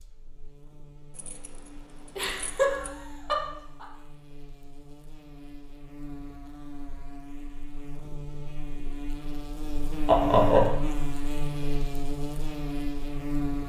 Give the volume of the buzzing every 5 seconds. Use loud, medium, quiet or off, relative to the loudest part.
quiet, medium, loud.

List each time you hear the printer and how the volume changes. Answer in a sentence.
The printer can't be heard in this clip.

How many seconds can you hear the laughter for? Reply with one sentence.
You can hear the laughter for 2 seconds altogether.